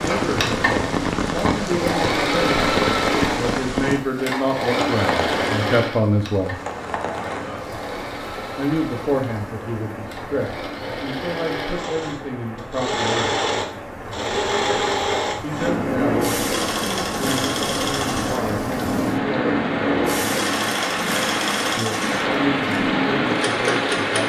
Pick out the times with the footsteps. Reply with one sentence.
The footsteps can't be heard in this clip.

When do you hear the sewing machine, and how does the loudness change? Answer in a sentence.
The sewing machine can be heard from 0.0 to 24.2 s, getting quieter then louder.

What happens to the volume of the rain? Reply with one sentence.
The loudness of the rain goes down, then up.